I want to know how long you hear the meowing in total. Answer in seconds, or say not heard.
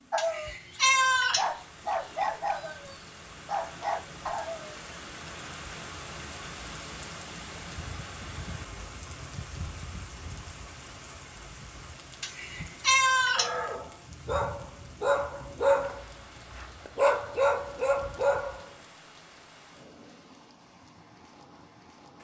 3 s.